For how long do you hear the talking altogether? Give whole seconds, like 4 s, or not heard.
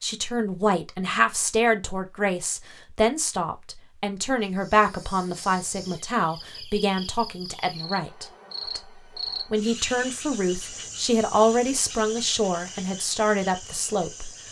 14 s.